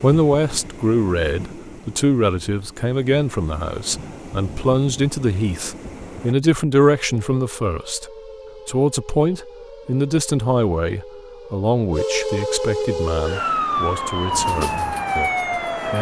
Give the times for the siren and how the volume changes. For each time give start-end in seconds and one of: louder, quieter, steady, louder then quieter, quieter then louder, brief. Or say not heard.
6.8-15.9 louder.